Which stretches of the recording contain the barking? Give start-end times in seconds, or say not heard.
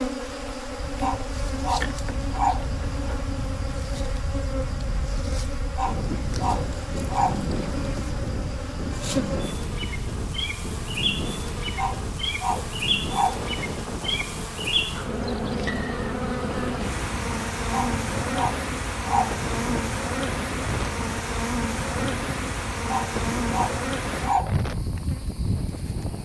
1.0-2.6, 5.8-7.4, 11.8-13.4, 17.7-19.4, 22.9-24.6.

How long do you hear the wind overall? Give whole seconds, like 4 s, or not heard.
26 s.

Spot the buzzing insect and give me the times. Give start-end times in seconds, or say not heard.
0.0-26.2.